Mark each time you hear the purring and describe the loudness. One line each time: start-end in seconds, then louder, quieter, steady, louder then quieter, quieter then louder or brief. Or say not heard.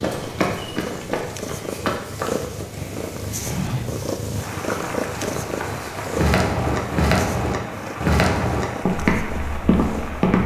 0.1-10.4 quieter.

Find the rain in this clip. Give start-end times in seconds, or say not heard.
4.3-10.4.